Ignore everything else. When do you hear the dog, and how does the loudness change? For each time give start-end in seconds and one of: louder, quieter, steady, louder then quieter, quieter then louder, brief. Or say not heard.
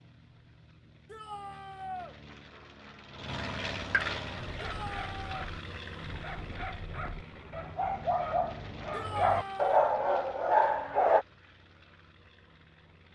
4.3-11.2 louder.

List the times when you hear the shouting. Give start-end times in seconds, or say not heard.
1.1-2.1, 4.6-5.5, 8.9-9.8.